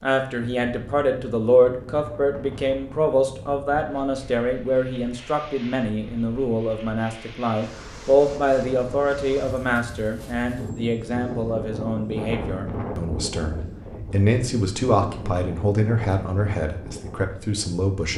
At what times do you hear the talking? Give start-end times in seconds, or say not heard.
0.0-18.1.